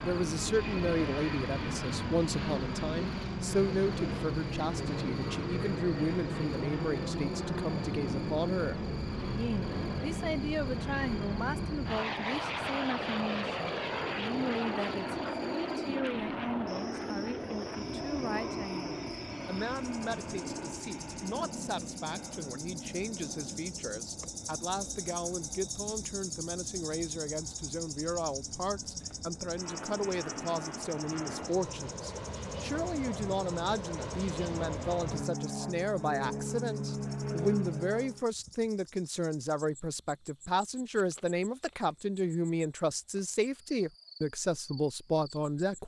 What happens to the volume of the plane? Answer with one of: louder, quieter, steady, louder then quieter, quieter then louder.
quieter then louder.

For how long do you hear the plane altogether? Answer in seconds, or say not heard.
38 s.